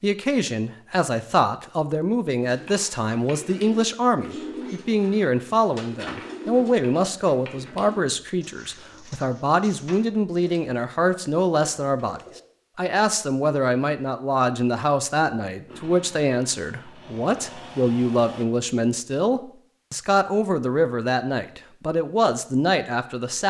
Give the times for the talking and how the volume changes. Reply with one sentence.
You can hear the talking from 0.0 to 23.4 s, at a steady volume.